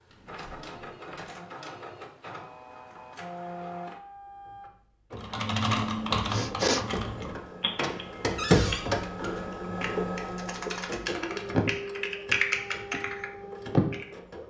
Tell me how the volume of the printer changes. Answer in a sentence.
The volume of the printer goes up, then down.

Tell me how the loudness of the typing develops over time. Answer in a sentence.
The volume of the typing goes down, then up.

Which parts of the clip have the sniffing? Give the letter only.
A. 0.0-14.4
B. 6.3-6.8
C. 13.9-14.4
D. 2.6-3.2
B.